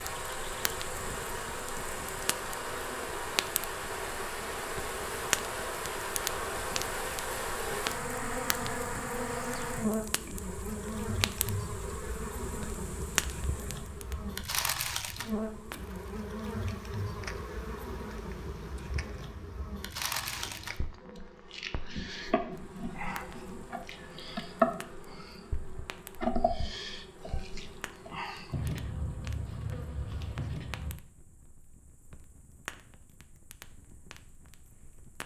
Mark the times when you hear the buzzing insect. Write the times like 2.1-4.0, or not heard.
0.0-31.0.